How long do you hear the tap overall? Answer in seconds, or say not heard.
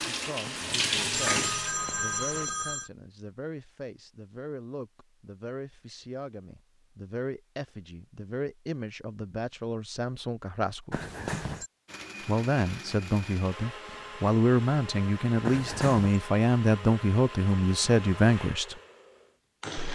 2 s.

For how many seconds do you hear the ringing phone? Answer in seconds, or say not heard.
4 s.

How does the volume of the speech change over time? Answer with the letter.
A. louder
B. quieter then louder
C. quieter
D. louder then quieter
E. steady
A.